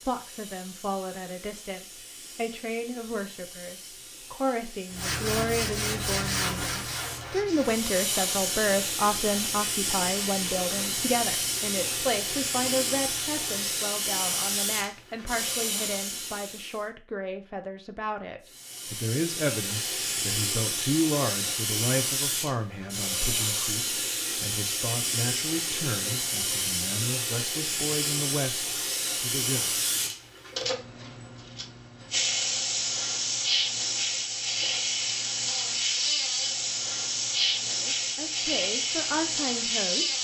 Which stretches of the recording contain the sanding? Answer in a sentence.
The sanding can be heard from 4.9 to 13.8 s.